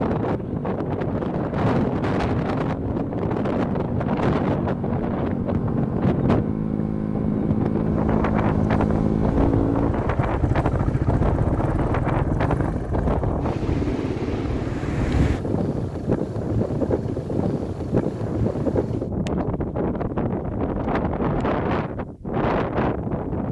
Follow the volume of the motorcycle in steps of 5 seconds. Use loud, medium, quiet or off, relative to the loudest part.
medium, loud, loud, quiet, off.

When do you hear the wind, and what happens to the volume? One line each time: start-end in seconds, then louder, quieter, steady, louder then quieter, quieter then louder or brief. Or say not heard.
0.0-23.4 steady.